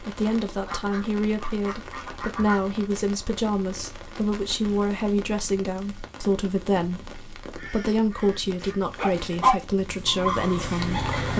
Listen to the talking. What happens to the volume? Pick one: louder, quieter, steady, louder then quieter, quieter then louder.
steady.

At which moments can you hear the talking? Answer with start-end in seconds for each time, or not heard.
0.0-11.3.